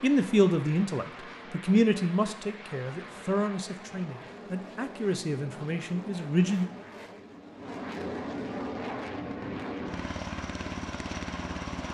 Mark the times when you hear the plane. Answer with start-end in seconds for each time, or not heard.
0.0-11.9.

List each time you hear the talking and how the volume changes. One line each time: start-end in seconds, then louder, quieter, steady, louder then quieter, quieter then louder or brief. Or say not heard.
0.0-6.7 quieter.